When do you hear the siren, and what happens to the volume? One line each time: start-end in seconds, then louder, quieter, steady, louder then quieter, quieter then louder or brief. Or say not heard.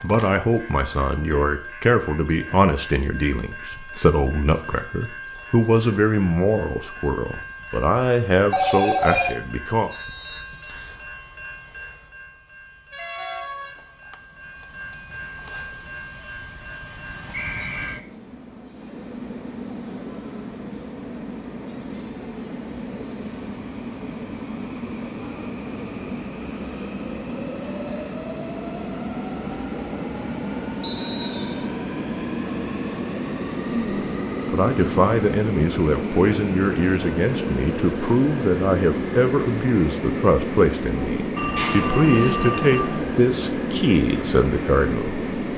not heard.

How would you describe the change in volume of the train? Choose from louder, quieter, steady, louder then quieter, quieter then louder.
louder.